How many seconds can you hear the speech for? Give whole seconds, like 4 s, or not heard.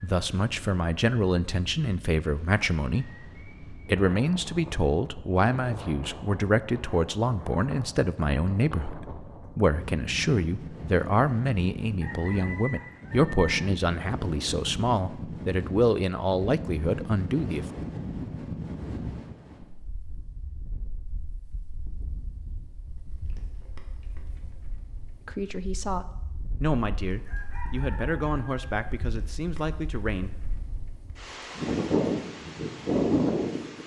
23 s.